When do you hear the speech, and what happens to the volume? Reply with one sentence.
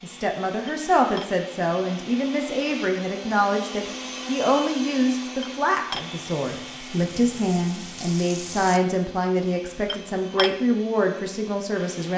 The speech can be heard from 0.0 to 12.1 s, at a steady volume.